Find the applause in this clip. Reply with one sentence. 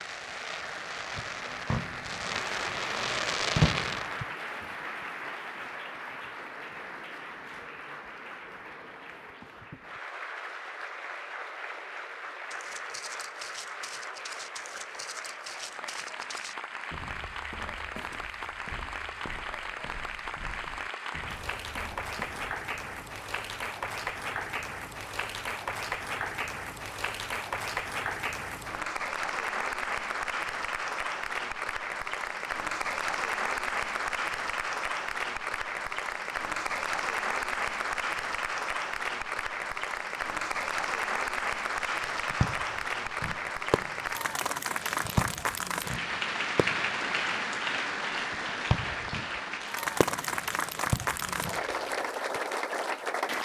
You can hear the applause from 0.0 to 53.4 s.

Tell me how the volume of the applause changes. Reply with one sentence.
The volume of the applause goes up.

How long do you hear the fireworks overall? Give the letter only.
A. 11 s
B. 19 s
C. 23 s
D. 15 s
D.